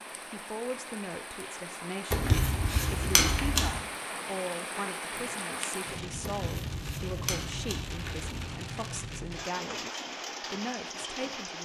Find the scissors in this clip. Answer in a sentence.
You can hear the scissors from 2.1 to 3.8 s and from 6.2 to 8.3 s.